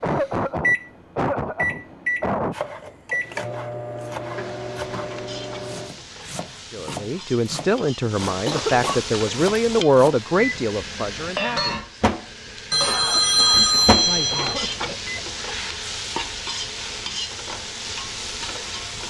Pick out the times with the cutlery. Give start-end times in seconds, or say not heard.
not heard.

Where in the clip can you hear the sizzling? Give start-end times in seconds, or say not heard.
4.2-19.0.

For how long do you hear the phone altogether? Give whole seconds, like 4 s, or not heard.
2 s.